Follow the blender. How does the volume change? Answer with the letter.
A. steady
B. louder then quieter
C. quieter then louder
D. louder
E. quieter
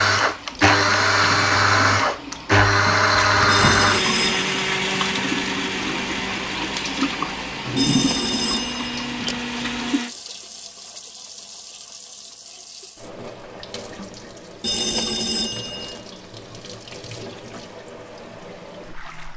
E.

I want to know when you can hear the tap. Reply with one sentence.
The tap can be heard from 0.1 to 19.3 s.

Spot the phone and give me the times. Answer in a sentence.
You can hear the phone from 3.5 to 4.5 s, from 7.8 to 9.3 s and from 14.6 to 15.9 s.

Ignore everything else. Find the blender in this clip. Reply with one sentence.
The blender can be heard from 0.0 to 10.2 s.